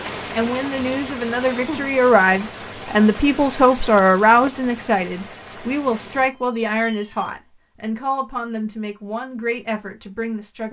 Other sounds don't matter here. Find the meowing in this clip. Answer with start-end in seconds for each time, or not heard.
0.8-1.8, 5.8-7.3.